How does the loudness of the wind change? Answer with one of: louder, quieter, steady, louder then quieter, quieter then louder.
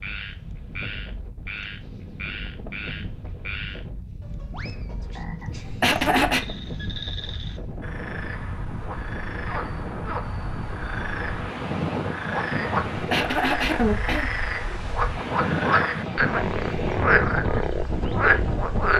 louder.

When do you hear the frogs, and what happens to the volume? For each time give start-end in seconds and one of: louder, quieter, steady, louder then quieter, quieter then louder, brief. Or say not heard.
0.0-18.9 louder.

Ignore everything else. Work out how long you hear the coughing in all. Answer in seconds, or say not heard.
2 s.